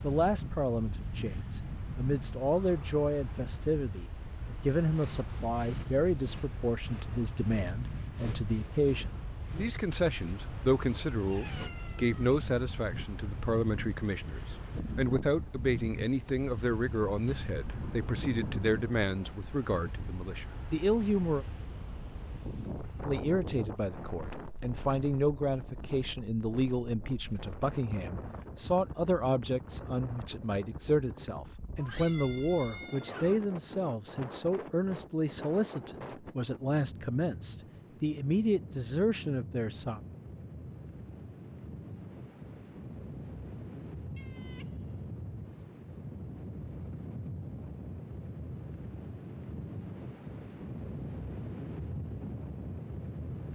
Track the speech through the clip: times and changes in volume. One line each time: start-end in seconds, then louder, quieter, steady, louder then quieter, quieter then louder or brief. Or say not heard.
0.0-21.4 steady
23.0-40.0 steady.